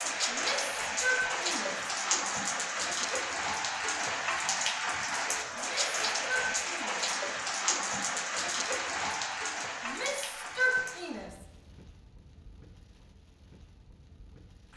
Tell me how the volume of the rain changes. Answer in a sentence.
The loudness of the rain goes down.